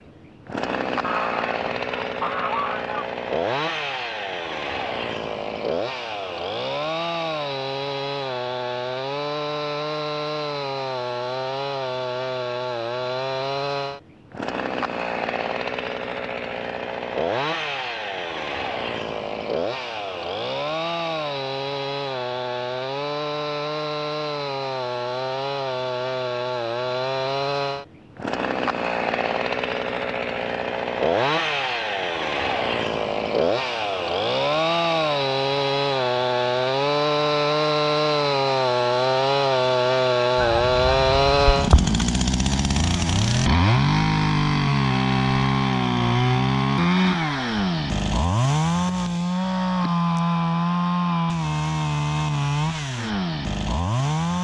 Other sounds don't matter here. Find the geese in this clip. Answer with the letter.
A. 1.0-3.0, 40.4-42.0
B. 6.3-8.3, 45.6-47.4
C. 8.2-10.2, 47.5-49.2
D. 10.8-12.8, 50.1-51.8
A.